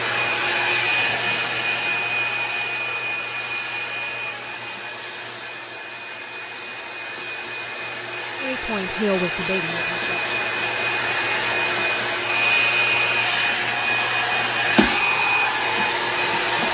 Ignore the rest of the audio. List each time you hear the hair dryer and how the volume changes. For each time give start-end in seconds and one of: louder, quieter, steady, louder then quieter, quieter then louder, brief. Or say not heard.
0.0-16.7 quieter then louder.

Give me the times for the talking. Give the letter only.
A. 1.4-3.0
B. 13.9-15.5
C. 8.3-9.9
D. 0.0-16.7
C.